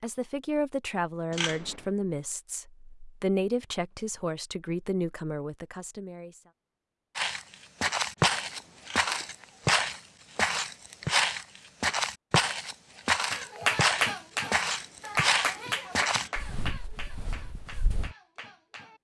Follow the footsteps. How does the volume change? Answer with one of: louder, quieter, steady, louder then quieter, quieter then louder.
quieter.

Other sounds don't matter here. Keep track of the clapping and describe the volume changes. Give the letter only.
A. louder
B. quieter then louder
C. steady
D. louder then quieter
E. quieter
E.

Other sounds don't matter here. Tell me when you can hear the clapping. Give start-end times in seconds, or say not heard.
13.3-18.9.